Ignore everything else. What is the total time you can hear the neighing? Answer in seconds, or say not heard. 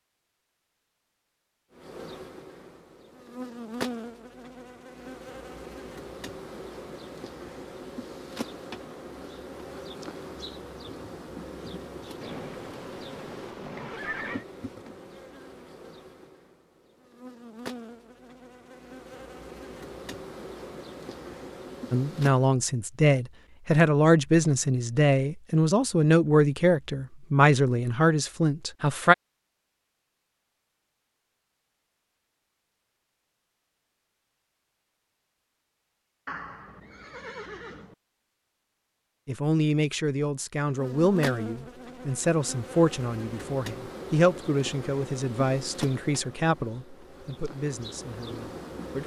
4 s.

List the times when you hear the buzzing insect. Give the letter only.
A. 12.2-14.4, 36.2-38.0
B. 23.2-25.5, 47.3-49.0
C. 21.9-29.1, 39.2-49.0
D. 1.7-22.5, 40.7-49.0
D.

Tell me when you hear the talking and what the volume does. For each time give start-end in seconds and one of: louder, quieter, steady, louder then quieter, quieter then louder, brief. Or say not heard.
21.9-29.1 steady
39.2-49.0 quieter.